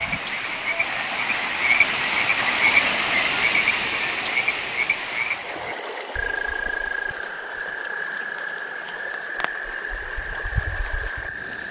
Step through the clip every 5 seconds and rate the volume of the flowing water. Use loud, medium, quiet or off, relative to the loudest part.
loud, medium, quiet.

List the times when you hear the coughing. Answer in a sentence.
The coughing can't be heard in this clip.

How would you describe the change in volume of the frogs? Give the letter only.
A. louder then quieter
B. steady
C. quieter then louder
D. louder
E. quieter
E.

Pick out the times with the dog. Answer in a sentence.
The dog can't be heard in this clip.